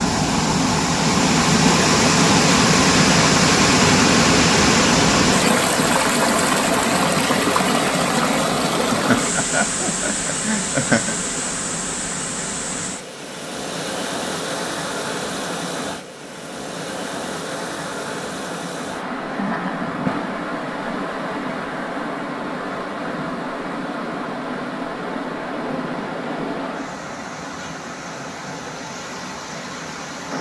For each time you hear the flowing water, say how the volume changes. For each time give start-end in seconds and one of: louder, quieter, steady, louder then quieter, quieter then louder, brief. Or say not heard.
0.0-30.3 quieter.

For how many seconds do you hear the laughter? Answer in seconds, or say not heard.
3 s.